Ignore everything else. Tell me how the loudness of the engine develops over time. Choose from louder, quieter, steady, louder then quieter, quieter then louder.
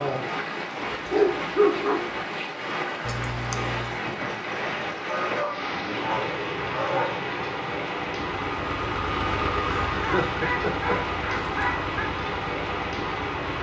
quieter.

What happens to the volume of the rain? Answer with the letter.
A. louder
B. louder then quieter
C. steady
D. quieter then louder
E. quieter
C.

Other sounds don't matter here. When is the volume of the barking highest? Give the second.
2 s.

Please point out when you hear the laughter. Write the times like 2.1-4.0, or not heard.
3.0-4.0, 9.9-11.0.